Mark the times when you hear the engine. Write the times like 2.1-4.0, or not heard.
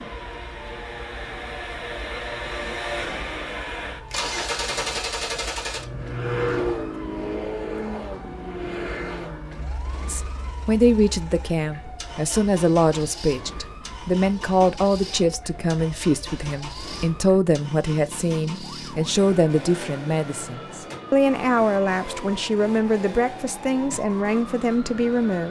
0.0-25.4.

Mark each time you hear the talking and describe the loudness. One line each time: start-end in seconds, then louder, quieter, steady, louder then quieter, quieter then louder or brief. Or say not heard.
10.1-25.4 steady.